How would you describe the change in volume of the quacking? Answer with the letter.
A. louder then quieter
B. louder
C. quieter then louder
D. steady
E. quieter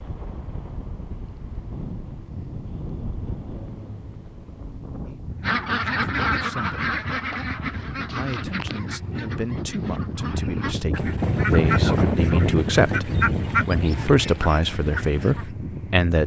C.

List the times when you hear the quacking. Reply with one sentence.
The quacking can be heard from 5.4 to 15.5 s.